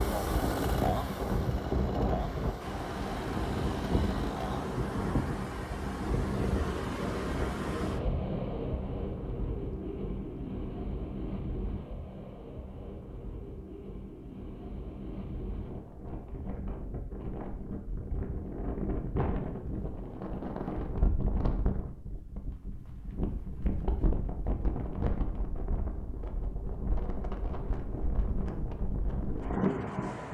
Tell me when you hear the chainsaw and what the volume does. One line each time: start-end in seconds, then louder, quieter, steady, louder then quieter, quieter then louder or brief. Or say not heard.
0.0-4.7 quieter.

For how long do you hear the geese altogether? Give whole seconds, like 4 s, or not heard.
not heard.